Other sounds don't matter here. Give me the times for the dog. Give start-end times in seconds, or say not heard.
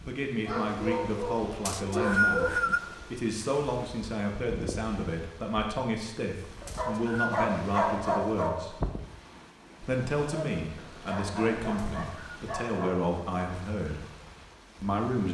0.4-3.0, 6.6-8.6, 10.2-13.0.